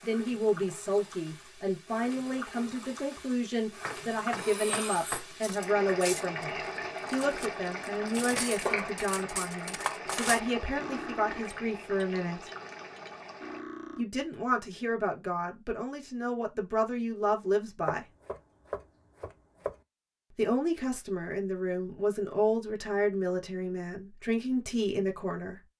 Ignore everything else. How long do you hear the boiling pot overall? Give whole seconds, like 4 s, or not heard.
14 s.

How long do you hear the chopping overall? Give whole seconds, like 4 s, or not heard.
4 s.